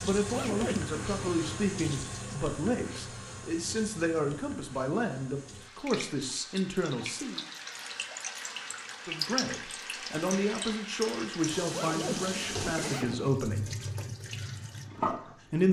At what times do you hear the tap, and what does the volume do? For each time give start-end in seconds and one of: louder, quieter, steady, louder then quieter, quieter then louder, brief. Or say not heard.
0.0-15.6 quieter then louder.